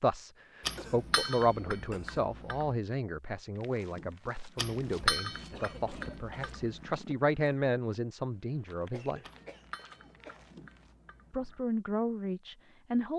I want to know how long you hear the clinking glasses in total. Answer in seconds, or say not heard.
7 s.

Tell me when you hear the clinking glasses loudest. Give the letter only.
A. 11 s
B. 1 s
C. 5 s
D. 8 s
C.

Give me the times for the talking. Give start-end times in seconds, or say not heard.
0.0-9.2, 11.3-13.1.